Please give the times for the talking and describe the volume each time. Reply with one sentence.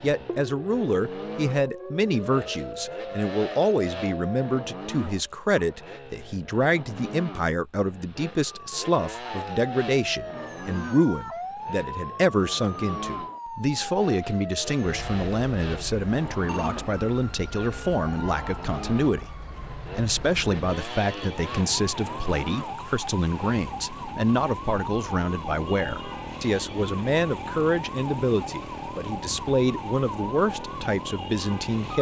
You can hear the talking from 0.0 to 31.9 s, at a steady volume.